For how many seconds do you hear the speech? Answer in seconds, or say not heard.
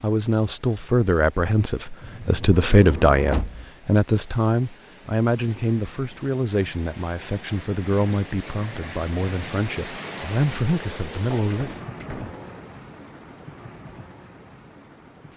12 s.